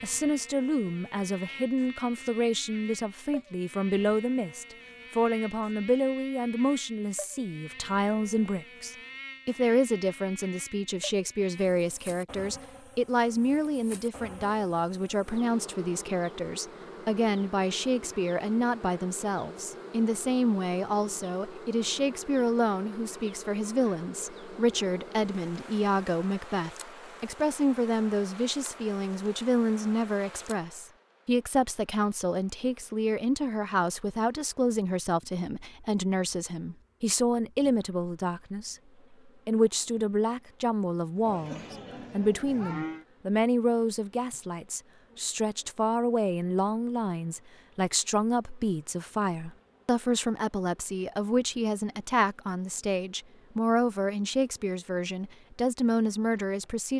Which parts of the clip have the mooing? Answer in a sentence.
You can hear the mooing from 41.2 to 43.0 s.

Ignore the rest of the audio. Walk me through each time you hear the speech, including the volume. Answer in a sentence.
The speech can be heard from 0.0 to 38.8 s, at a steady volume; and from 39.5 to 56.9 s, at a steady volume.